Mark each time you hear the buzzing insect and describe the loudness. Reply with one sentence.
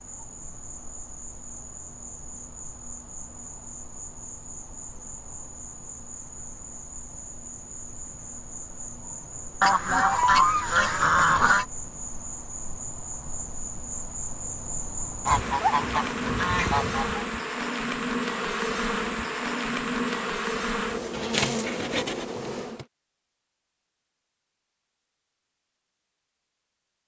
The buzzing insect can be heard from 0.0 to 22.9 s, getting louder.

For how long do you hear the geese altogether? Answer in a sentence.
You can hear the geese for 4 seconds altogether.